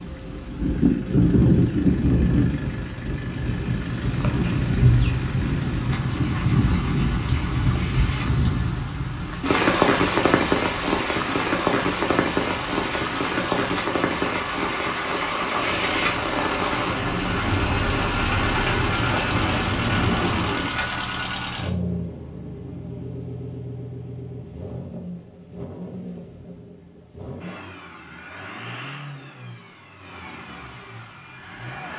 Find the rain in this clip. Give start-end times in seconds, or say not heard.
0.0-20.8.